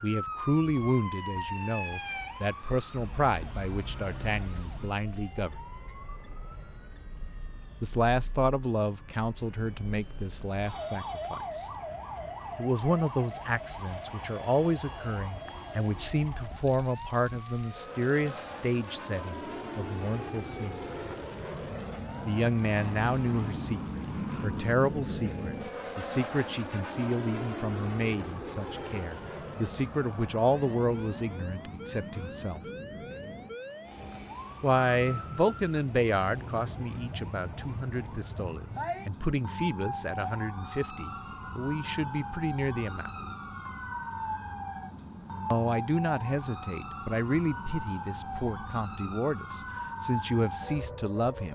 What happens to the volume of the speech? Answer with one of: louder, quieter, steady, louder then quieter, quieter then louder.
steady.